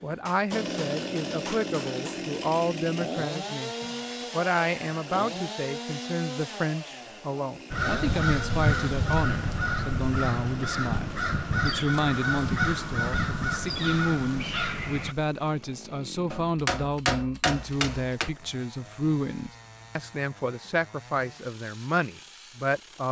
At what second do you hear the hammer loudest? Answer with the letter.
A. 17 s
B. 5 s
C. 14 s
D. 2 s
A.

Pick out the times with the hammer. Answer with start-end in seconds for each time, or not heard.
0.2-2.2, 16.3-18.3.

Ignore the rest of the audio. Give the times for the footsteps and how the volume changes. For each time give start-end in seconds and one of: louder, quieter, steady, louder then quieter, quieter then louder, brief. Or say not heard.
not heard.